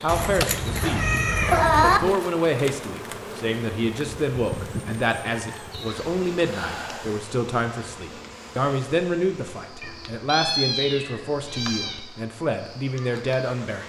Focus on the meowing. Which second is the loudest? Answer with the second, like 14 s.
2 s.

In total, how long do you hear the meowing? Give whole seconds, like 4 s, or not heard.
6 s.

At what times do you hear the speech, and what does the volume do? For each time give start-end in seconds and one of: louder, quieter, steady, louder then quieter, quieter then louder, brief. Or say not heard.
0.0-13.8 steady.